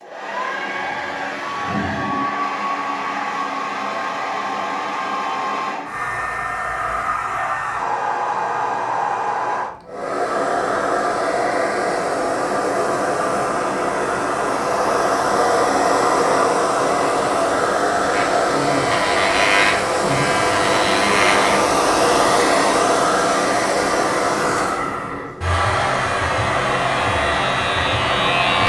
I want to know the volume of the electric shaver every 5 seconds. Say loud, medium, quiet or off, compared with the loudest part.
off, off, off, loud, loud, loud.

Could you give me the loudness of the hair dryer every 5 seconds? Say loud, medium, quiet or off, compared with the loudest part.
medium, medium, loud, loud, loud, loud.